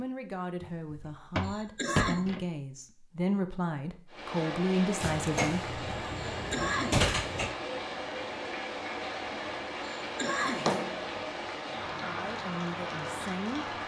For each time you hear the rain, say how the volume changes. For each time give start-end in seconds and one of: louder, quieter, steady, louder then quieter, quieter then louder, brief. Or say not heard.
4.0-13.8 steady.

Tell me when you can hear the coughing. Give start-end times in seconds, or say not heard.
1.4-2.4, 6.3-7.1, 10.0-10.8.